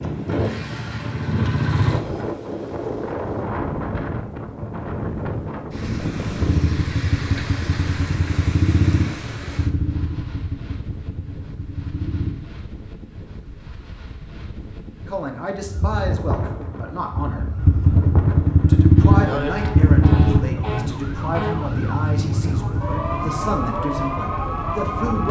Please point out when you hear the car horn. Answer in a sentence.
The car horn can't be heard in this clip.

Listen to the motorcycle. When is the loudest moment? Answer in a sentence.
The loudest moment of the motorcycle is at 19 seconds.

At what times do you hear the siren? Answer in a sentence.
The siren can be heard from 15.6 to 25.2 s.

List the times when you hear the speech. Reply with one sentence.
You can hear the speech from 15.1 to 17.5 s and from 18.6 to 25.2 s.